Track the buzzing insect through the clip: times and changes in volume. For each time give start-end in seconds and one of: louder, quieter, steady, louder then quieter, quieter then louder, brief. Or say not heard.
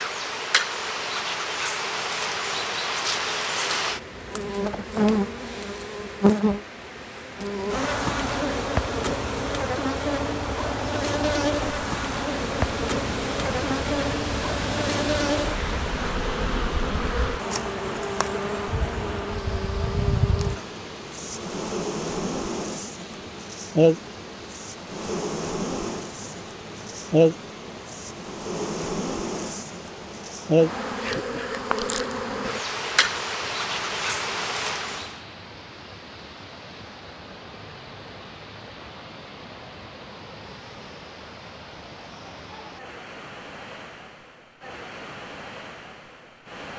0.0-35.2 steady.